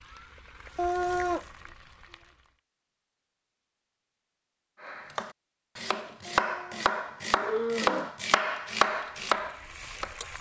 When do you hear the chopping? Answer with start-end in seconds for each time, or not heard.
4.8-10.2.